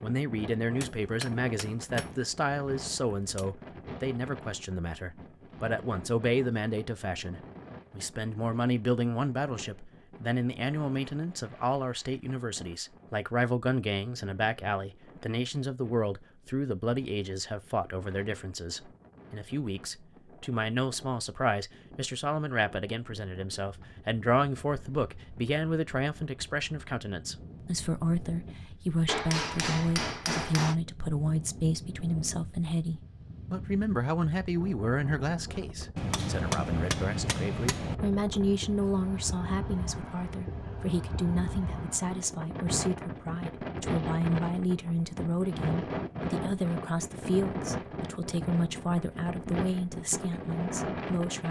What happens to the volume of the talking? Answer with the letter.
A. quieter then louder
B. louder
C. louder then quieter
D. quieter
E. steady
E.